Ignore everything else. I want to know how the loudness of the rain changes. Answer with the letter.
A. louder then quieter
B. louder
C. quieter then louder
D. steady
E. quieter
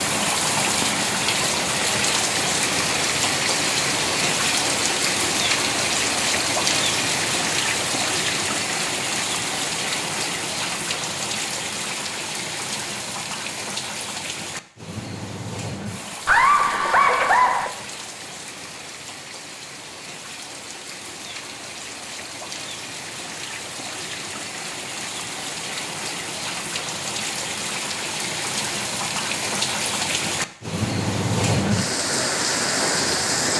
C.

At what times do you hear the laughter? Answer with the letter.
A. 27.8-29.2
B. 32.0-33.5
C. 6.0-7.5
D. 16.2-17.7
D.